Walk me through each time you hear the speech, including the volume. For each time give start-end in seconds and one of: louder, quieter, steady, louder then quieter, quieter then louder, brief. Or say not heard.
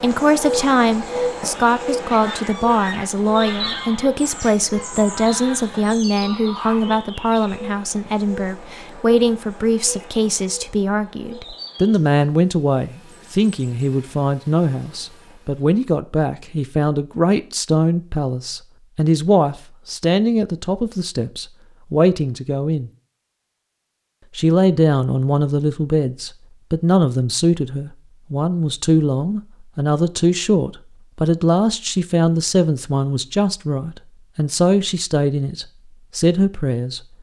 0.0-22.9 steady
24.4-37.0 steady.